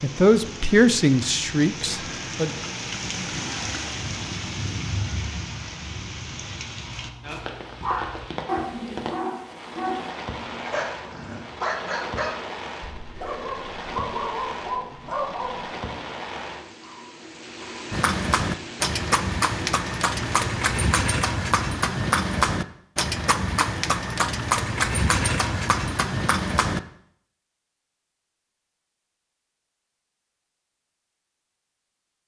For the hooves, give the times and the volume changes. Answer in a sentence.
You can hear the hooves from 17.9 to 26.8 s, at a steady volume.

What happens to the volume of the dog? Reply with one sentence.
The volume of the dog stays about the same.